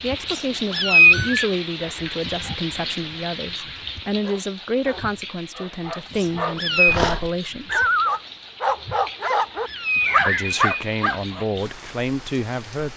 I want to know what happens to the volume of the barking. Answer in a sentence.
The loudness of the barking goes up.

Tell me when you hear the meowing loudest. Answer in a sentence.
The volume of the meowing peaks at 1 second.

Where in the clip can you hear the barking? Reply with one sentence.
The barking can be heard from 4.0 to 11.4 s.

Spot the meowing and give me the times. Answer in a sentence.
The meowing can be heard from 0.3 to 1.4 s, from 6.1 to 7.0 s and from 9.2 to 10.3 s.